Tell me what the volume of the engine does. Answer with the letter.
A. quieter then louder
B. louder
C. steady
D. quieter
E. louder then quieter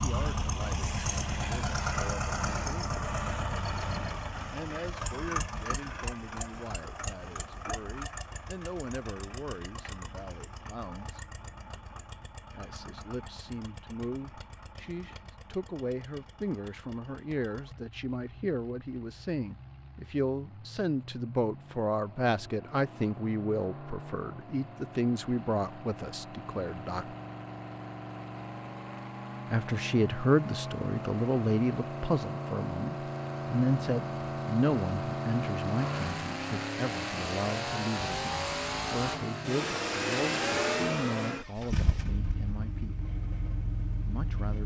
A.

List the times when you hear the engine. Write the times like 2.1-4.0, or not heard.
0.0-44.6.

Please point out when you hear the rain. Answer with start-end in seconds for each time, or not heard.
not heard.